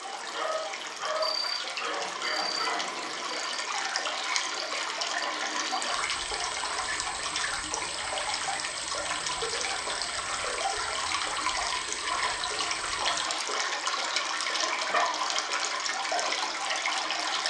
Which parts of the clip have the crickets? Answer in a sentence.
You can hear the crickets from 0.0 to 13.3 s.